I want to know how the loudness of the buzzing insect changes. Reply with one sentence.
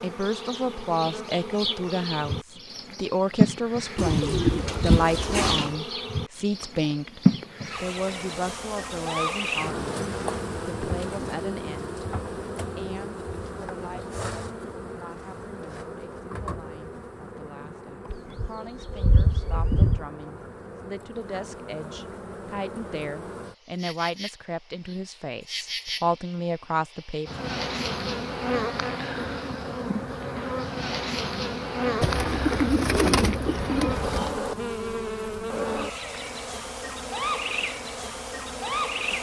The volume of the buzzing insect goes down, then up.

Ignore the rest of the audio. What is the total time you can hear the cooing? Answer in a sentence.
You can hear the cooing for 6 seconds altogether.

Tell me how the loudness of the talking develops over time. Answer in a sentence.
The volume of the talking goes down, then up.